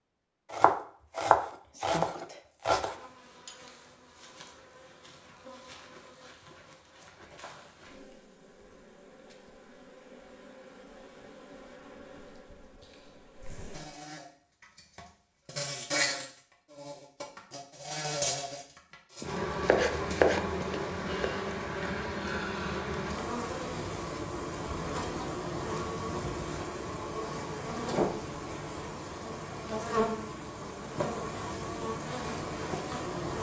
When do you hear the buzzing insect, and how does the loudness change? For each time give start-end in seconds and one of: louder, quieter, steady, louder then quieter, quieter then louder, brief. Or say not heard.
2.8-33.3 louder.